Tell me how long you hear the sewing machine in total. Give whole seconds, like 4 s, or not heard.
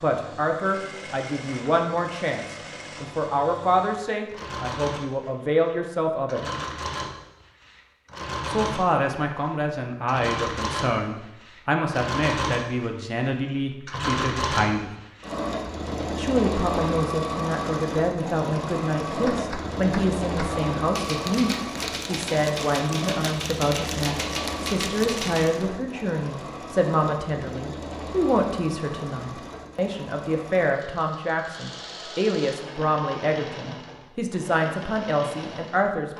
36 s.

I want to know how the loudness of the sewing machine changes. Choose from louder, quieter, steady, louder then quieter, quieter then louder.
louder then quieter.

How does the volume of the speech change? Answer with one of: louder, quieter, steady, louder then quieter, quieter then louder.
steady.